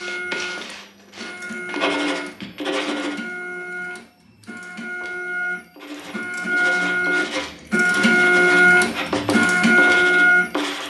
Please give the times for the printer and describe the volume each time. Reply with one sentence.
You can hear the printer from 0.0 to 10.8 s, getting louder.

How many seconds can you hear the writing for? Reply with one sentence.
You can hear the writing for 8 seconds altogether.